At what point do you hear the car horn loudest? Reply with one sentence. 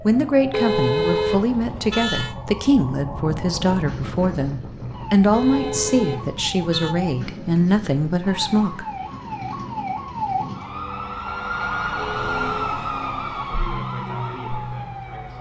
The loudest moment of the car horn is at 1 second.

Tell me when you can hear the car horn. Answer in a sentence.
The car horn can be heard from 0.5 to 2.4 s, from 5.3 to 7.0 s and from 11.9 to 12.8 s.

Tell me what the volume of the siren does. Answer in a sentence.
The loudness of the siren goes up.